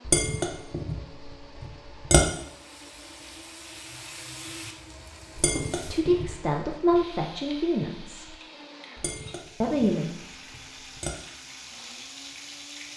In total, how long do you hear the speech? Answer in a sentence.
You can hear the speech for 3 seconds altogether.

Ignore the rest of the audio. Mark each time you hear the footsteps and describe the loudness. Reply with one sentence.
The footsteps can't be heard in this clip.